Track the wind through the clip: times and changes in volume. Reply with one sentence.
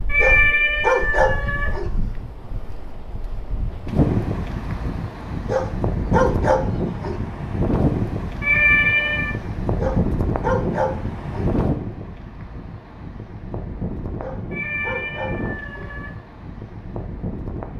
You can hear the wind from 0.0 to 17.7 s, getting louder then quieter.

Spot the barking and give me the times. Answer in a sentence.
The barking can be heard from 0.1 to 1.9 s, from 5.5 to 7.2 s, from 9.8 to 11.5 s and from 14.2 to 15.9 s.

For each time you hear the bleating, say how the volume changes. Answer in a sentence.
The bleating can't be heard in this clip.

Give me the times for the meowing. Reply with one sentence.
The meowing can be heard from 0.1 to 1.7 s, from 8.4 to 9.3 s and from 14.5 to 16.1 s.